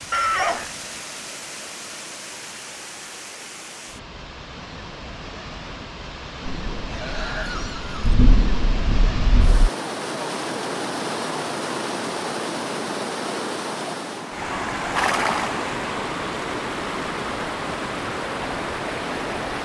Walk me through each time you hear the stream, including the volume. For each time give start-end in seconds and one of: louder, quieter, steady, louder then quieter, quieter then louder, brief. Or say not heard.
0.0-19.6 louder.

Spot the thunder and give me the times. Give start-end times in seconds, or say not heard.
6.5-9.7.